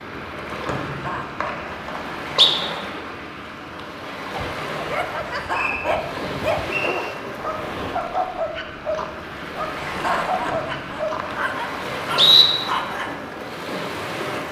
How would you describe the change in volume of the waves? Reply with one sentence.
The loudness of the waves stays about the same.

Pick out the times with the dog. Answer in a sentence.
The dog can be heard from 4.3 to 13.2 s.